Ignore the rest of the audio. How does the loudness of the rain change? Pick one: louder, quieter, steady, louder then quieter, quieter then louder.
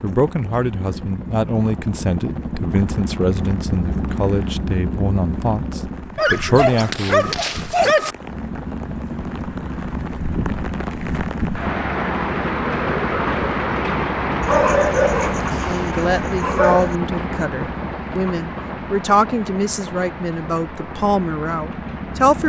louder then quieter.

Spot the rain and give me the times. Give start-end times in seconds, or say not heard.
0.0-22.4.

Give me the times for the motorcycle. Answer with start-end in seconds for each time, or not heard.
0.0-6.2, 8.2-22.4.